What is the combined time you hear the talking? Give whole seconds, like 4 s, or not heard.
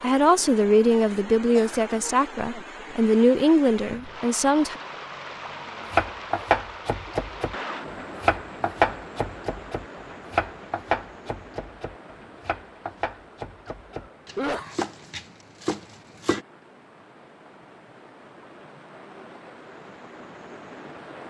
5 s.